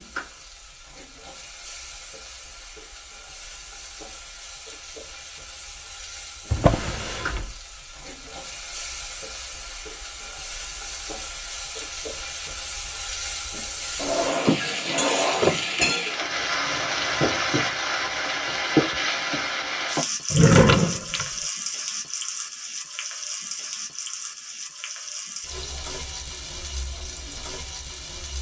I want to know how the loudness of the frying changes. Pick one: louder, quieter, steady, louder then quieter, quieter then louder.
louder then quieter.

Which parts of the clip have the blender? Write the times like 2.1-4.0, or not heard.
not heard.